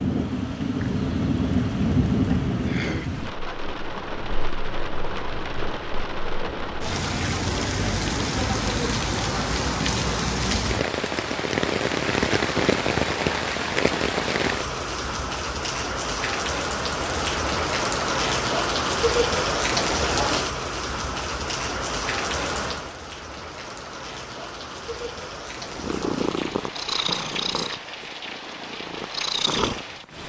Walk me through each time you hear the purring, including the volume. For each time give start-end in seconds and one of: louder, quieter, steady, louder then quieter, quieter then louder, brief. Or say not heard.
25.6-30.2 quieter then louder.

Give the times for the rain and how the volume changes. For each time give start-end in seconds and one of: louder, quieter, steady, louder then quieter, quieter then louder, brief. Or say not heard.
0.0-30.2 quieter.